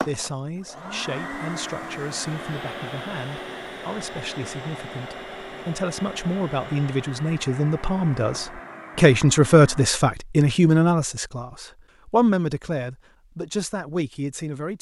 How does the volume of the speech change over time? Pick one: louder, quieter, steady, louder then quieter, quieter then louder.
louder then quieter.